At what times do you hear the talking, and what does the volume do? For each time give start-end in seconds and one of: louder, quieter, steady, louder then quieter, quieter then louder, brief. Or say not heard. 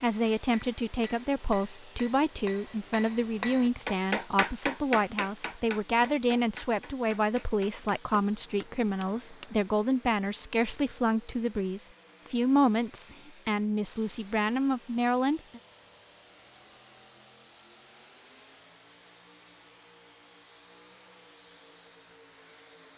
0.0-15.6 steady.